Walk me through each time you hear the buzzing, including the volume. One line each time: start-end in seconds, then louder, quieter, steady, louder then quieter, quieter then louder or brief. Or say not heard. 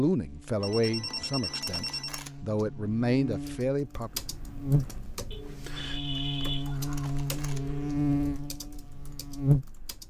0.1-10.0 louder.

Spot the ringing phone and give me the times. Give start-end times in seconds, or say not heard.
0.6-2.2, 5.3-7.9.